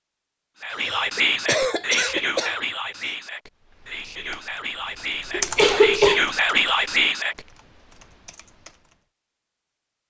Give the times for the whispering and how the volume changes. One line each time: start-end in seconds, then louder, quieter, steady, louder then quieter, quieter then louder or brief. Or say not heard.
0.6-7.5 quieter then louder.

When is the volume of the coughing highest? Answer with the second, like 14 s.
6 s.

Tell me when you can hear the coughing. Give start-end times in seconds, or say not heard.
0.7-3.1, 5.3-6.2.